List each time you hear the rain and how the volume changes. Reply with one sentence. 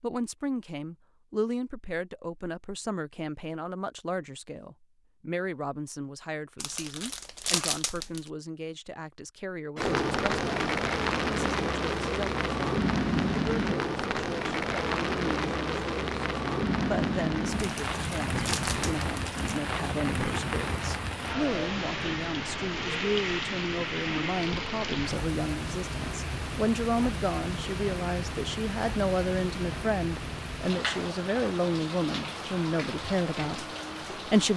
The rain can be heard from 9.8 to 34.5 s, getting quieter.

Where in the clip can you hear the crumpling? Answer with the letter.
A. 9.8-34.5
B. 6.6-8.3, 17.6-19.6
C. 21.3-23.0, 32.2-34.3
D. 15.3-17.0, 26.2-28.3
B.